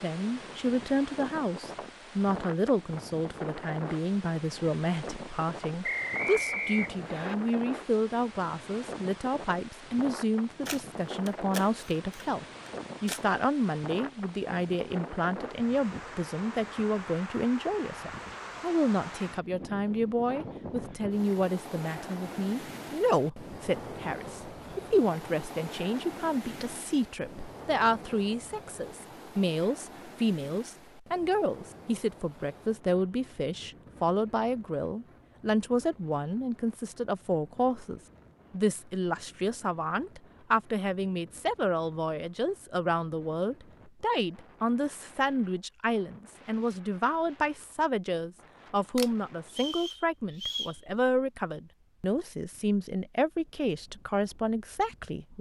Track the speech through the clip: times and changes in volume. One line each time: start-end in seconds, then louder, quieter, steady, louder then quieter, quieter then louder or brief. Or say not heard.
0.0-55.3 steady.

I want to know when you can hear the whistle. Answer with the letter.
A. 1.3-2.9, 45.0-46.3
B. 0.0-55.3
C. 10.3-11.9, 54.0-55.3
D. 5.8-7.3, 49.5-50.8
D.